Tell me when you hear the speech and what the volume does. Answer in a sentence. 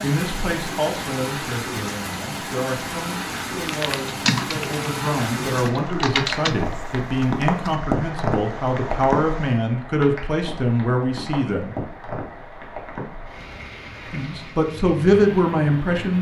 You can hear the speech from 0.0 to 11.8 s, getting louder; and briefly from 14.1 to 16.1 s.